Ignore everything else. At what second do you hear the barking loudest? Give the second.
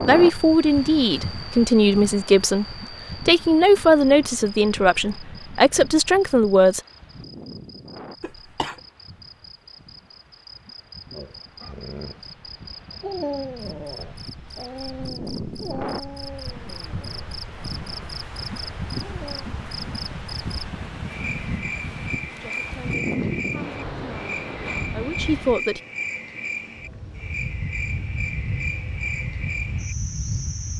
13 s.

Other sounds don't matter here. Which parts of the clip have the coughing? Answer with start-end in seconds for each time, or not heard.
8.2-8.8.